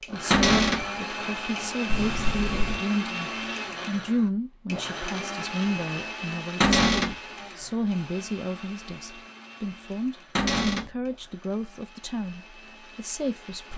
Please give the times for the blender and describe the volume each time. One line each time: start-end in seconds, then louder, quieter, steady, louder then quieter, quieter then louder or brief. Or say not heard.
0.0-13.7 quieter.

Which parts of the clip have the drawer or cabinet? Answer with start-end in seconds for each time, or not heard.
0.3-0.8, 6.6-7.2, 10.3-10.9.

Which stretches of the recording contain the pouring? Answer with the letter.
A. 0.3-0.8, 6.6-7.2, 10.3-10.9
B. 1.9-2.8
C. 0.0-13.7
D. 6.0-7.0
B.